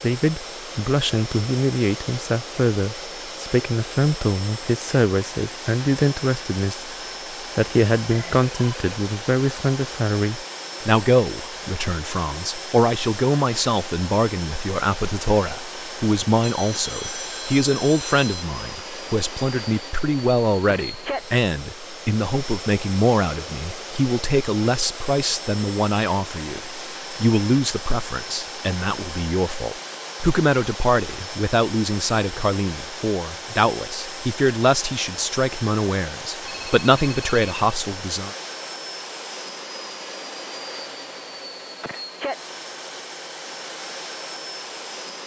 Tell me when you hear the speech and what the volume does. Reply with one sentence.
The speech can be heard from 0.0 to 6.9 s, at a steady volume; and from 7.5 to 38.3 s, at a steady volume.